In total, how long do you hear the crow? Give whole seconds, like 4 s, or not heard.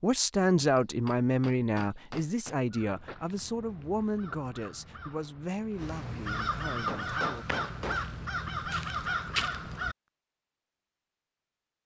7 s.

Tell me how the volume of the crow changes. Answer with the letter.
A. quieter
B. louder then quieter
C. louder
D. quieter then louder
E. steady
C.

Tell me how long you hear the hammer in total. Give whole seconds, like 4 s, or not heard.
4 s.